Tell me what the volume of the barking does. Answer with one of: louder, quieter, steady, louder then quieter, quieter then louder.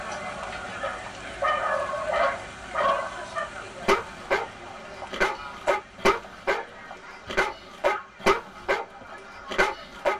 steady.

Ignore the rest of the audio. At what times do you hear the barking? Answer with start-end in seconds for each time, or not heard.
0.8-10.1.